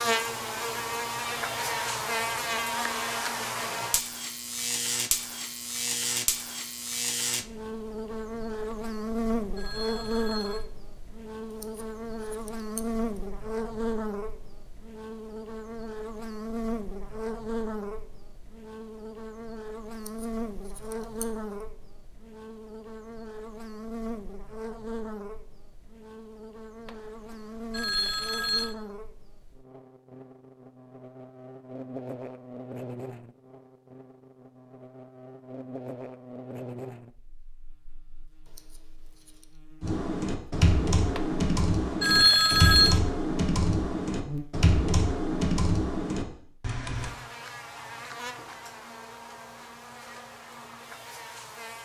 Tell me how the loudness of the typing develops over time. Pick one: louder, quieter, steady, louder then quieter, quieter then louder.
steady.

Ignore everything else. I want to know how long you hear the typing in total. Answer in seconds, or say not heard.
7 s.